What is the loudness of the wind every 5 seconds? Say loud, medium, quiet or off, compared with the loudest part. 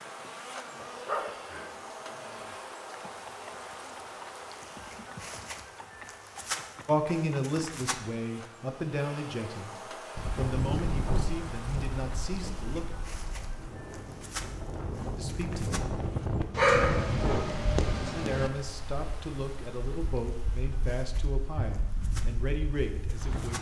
off, off, loud, loud, medium.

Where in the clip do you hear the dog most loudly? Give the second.
17 s.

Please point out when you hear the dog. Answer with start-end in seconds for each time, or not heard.
0.8-2.5, 16.5-18.5.